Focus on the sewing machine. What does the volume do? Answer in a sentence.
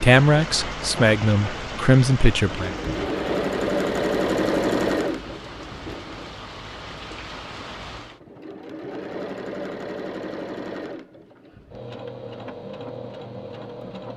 The loudness of the sewing machine goes down.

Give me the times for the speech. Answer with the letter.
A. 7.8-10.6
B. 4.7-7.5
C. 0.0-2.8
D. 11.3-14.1
C.